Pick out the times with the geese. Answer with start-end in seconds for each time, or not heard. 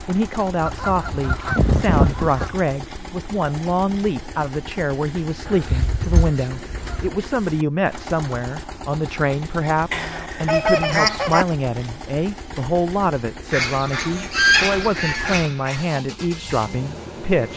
0.7-2.6, 5.5-7.1, 9.9-11.4, 13.5-15.8.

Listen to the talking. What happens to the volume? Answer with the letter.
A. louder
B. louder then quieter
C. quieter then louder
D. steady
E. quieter
D.